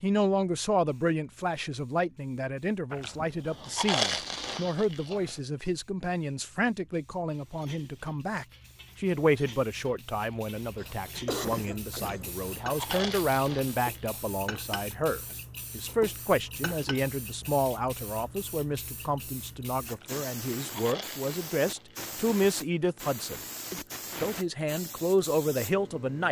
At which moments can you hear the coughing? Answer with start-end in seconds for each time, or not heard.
10.8-12.4.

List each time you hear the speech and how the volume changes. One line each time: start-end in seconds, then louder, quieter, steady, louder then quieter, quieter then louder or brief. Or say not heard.
0.0-26.2 steady.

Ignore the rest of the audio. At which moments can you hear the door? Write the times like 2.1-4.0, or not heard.
not heard.